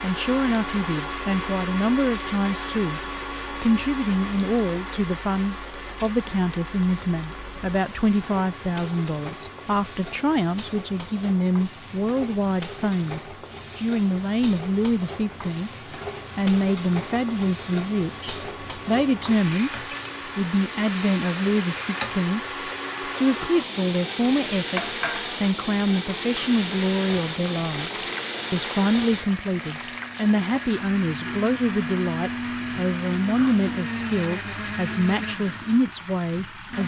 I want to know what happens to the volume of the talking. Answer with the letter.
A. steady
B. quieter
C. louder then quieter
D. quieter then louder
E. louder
A.